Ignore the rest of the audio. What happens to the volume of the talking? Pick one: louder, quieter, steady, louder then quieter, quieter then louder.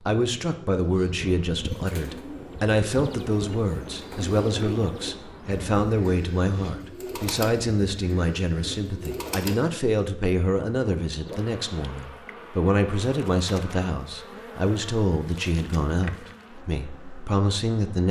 steady.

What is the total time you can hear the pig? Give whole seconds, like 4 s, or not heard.
not heard.